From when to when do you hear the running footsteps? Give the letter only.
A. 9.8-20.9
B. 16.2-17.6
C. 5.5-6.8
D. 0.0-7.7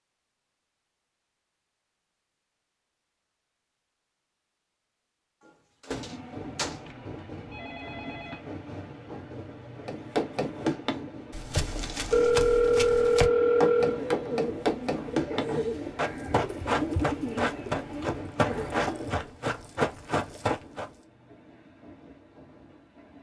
A.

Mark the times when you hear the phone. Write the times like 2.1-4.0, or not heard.
6.7-8.4, 12.1-14.0.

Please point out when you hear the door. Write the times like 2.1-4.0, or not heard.
5.5-6.8.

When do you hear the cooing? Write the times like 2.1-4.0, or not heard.
11.7-19.3.